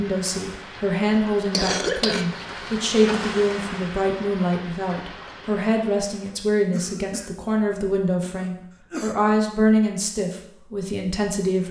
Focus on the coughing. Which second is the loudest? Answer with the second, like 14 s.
2 s.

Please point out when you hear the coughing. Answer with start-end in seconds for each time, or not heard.
1.5-2.8, 6.7-9.2.